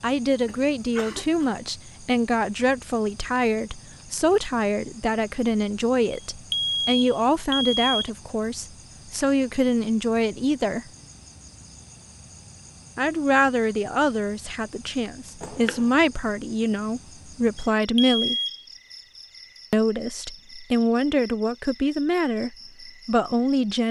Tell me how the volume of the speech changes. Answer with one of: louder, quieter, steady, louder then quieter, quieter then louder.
steady.